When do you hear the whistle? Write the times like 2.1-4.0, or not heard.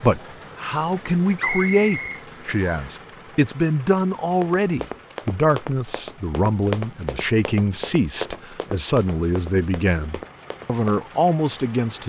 1.4-3.0.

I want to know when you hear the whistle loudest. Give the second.
2 s.